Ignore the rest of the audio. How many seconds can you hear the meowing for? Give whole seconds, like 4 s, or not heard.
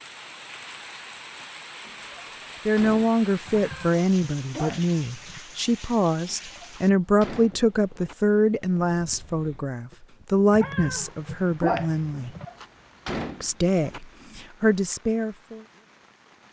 4 s.